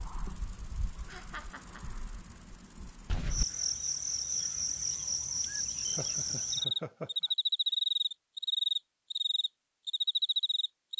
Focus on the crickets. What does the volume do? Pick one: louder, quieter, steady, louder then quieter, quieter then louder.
louder.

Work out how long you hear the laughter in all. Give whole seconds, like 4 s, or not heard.
3 s.